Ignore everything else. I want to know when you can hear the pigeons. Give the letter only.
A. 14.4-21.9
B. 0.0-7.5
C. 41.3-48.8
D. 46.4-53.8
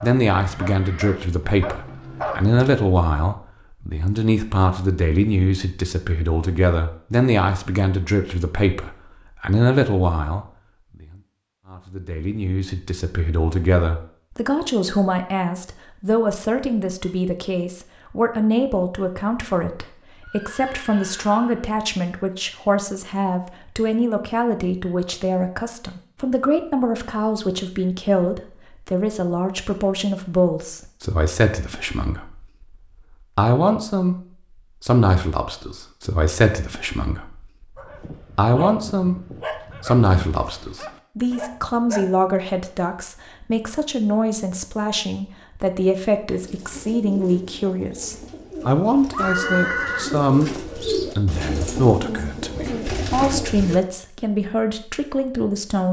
D.